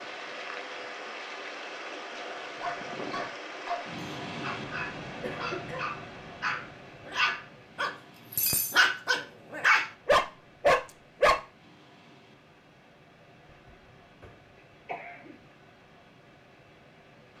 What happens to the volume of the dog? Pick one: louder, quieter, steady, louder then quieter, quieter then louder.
louder.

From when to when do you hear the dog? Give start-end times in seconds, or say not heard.
2.1-11.4.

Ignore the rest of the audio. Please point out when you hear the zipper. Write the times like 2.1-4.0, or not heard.
not heard.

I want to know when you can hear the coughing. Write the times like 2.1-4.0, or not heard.
5.2-6.0, 13.4-15.4.